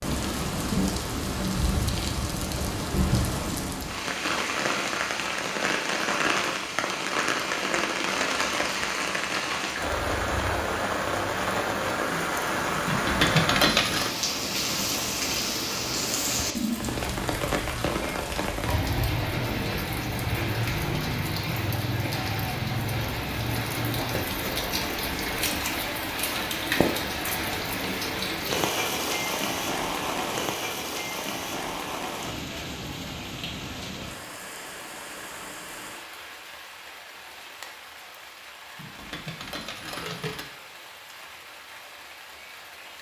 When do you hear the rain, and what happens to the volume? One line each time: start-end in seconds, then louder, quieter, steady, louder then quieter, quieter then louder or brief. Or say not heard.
0.0-42.9 quieter.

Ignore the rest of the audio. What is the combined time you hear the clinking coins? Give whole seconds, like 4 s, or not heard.
3 s.